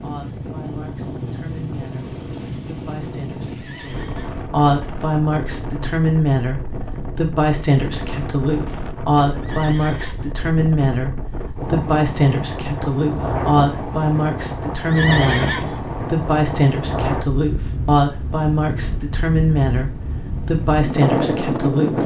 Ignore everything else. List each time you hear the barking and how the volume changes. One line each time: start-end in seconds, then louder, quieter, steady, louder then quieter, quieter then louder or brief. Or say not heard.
not heard.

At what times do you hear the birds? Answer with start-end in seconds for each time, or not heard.
not heard.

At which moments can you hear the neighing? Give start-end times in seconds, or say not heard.
3.5-4.5, 9.4-10.3, 14.8-15.8.